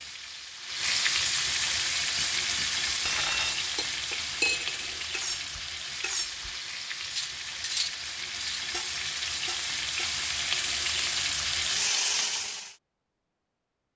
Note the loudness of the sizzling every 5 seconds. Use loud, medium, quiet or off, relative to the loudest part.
loud, medium, loud.